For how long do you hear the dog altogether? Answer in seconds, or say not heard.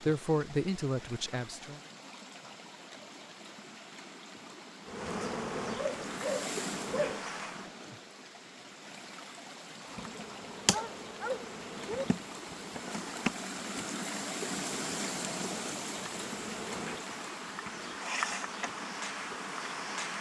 3 s.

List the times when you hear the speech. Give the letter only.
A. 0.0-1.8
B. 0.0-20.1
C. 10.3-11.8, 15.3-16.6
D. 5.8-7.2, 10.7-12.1
A.